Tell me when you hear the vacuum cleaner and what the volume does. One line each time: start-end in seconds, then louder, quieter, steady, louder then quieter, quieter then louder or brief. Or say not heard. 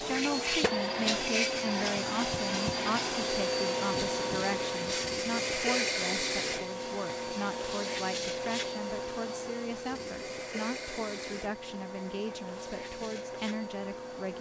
0.0-14.3 quieter.